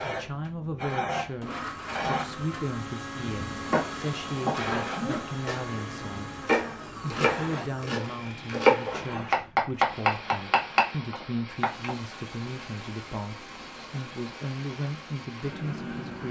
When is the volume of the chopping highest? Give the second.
9 s.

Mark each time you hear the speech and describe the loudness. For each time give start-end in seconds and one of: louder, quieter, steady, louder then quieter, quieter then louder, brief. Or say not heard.
0.0-16.2 steady.